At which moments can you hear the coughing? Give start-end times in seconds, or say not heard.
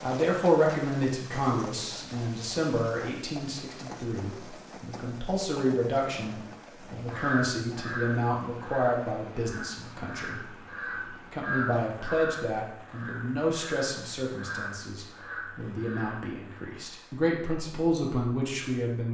not heard.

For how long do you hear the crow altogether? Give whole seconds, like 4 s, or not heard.
9 s.